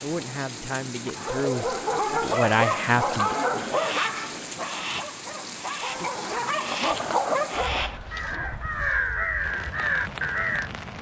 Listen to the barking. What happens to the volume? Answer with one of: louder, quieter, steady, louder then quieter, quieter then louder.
quieter then louder.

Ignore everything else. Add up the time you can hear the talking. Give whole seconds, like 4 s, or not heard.
3 s.